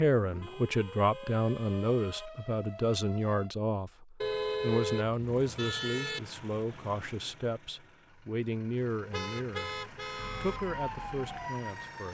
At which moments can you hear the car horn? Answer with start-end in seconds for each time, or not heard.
0.4-2.3, 4.2-6.2, 9.1-10.6.